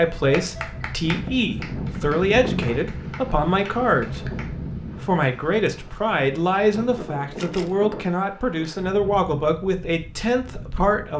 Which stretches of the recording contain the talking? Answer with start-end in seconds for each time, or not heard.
0.0-11.1.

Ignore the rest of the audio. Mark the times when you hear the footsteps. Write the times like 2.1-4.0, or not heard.
not heard.